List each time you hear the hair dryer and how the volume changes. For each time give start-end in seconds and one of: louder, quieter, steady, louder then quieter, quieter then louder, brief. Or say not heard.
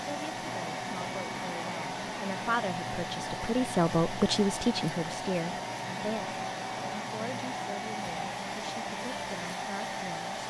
0.0-10.4 steady.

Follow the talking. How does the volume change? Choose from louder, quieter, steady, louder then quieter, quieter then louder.
louder then quieter.